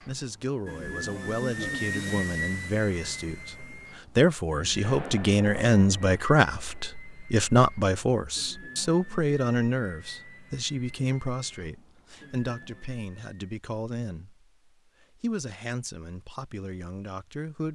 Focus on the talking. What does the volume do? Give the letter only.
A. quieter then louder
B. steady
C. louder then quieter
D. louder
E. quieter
C.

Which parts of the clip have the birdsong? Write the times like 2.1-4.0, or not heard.
not heard.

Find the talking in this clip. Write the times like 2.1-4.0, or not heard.
0.1-17.6.